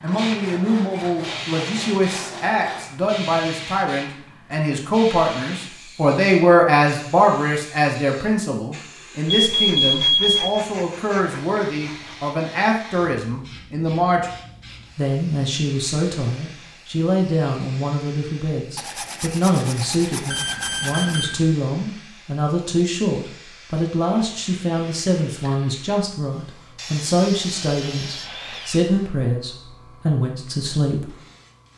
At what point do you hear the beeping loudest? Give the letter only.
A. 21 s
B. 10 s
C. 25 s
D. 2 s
B.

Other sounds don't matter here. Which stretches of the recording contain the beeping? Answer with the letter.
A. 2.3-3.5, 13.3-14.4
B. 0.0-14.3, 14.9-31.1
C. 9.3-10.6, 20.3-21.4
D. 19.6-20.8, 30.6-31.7
C.